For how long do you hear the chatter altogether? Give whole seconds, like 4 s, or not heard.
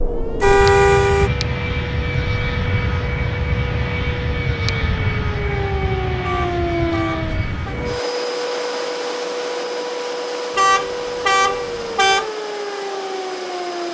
not heard.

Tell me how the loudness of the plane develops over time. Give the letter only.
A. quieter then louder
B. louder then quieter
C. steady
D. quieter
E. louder
D.